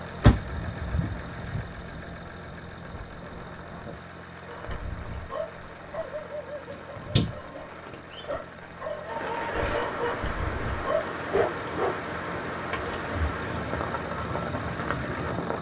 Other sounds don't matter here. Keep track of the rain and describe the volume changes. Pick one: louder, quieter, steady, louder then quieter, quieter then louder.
louder.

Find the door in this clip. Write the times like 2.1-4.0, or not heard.
0.2-1.6, 6.7-8.0, 12.7-13.3.